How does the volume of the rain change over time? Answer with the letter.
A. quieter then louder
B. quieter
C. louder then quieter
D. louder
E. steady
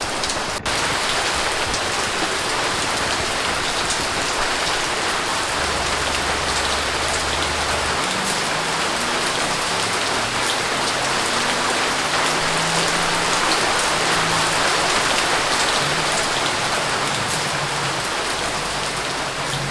E.